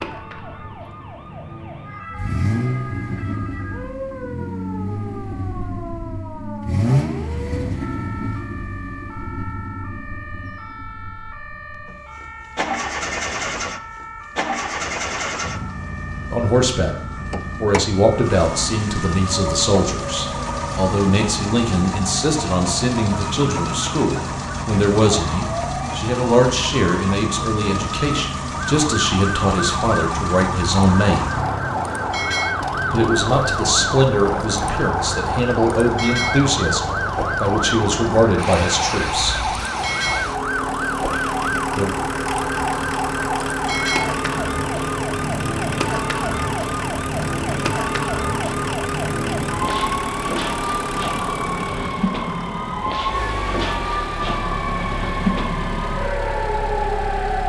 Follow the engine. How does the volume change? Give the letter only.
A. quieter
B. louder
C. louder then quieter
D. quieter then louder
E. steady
E.